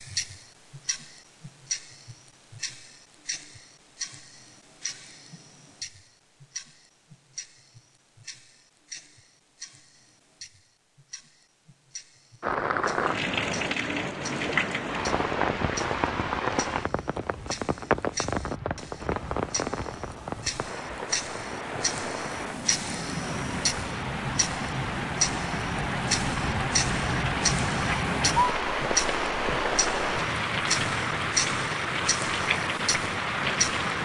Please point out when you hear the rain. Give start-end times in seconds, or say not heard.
12.4-34.0.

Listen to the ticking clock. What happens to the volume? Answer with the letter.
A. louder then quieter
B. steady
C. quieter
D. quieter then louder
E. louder
D.